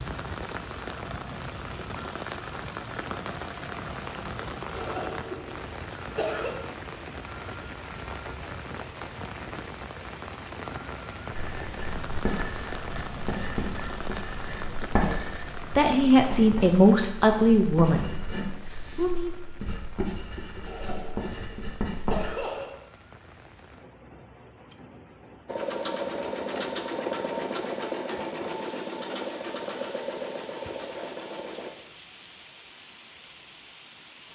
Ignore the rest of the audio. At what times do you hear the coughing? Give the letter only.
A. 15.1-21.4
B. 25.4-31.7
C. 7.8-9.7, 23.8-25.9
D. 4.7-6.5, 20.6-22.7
D.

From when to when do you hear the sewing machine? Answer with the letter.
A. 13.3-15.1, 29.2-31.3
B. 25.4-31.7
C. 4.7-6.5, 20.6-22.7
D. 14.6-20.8
B.